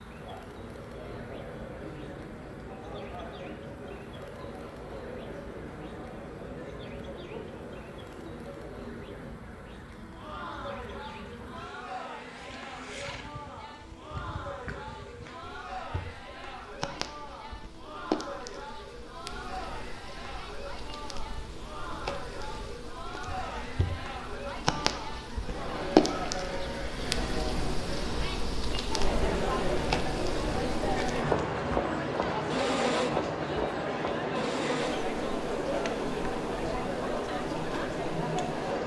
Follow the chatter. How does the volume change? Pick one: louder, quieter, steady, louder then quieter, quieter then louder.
louder.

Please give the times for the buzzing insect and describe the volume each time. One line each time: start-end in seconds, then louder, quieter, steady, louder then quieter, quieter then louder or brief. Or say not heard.
0.0-38.8 louder.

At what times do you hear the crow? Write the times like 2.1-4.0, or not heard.
not heard.